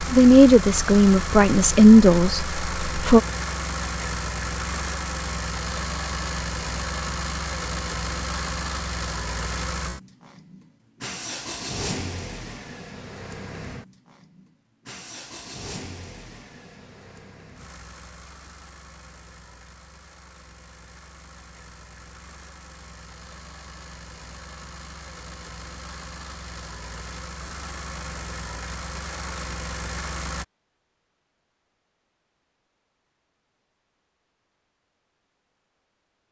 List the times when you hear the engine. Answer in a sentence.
You can hear the engine from 0.0 to 30.4 s.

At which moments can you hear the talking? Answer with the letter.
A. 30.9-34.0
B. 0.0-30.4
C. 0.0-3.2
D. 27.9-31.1
C.